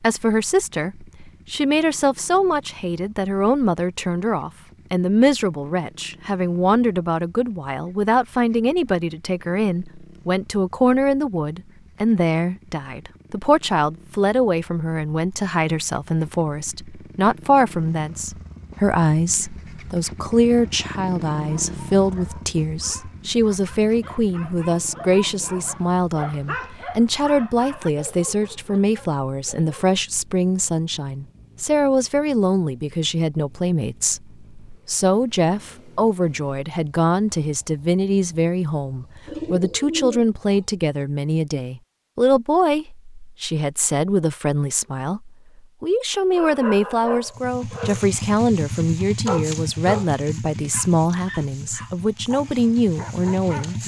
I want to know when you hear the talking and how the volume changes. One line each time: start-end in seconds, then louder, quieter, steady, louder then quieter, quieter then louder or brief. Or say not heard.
0.0-53.8 steady.